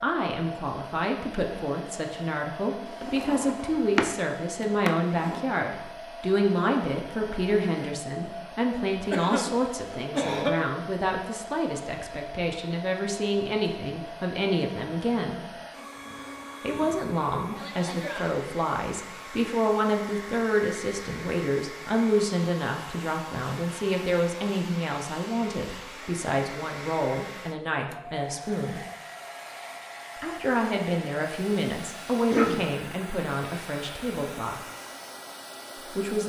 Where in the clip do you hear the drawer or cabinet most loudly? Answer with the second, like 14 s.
4 s.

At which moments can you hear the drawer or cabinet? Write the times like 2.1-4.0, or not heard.
2.9-5.5.